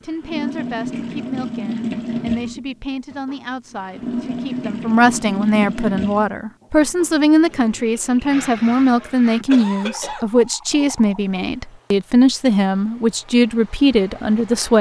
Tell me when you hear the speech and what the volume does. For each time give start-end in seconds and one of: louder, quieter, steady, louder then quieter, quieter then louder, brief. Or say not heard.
0.0-14.7 louder.